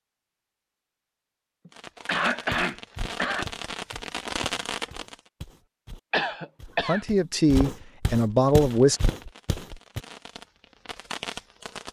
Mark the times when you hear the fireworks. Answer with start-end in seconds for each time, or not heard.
1.7-5.2, 8.2-11.8.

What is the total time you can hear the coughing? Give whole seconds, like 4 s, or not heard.
3 s.